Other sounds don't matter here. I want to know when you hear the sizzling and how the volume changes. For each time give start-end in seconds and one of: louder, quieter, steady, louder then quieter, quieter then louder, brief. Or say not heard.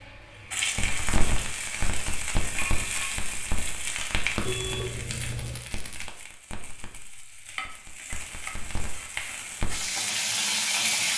0.0-11.1 quieter then louder.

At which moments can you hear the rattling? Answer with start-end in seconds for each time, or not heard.
5.2-6.1.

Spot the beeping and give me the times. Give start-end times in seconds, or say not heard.
4.5-5.6.